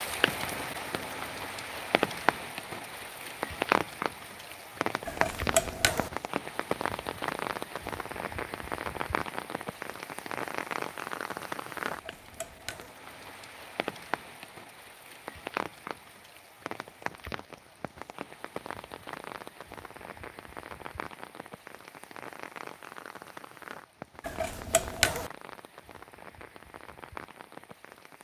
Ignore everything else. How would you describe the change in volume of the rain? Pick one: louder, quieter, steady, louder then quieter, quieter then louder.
quieter.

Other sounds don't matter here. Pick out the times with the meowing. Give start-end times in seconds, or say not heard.
5.0-6.1, 11.9-12.9, 24.2-25.3.